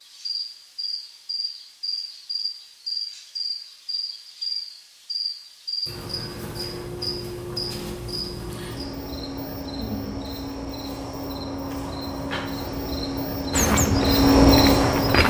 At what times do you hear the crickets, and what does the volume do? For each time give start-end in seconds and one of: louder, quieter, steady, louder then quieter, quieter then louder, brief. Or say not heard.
0.0-15.2 louder.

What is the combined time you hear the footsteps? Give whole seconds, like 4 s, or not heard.
2 s.